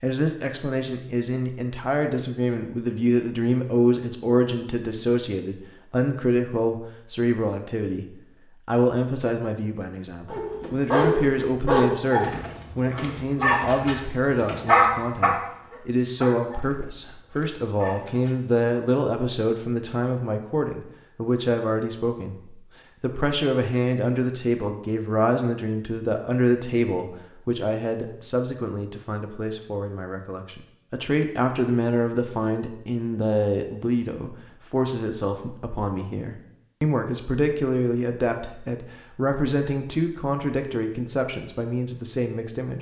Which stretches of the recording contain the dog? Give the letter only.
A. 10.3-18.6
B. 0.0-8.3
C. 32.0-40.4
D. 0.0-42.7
A.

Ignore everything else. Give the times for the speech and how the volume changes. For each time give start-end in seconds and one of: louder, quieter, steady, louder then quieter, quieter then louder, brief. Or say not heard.
0.0-42.7 steady.